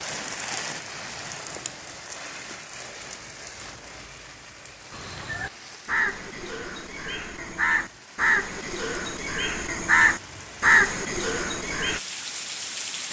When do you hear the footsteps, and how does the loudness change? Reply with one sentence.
You can't hear the footsteps here.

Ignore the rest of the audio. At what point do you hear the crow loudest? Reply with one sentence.
The volume of the crow peaks at 11 seconds.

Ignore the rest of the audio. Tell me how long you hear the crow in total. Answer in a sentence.
You can hear the crow for 7 seconds altogether.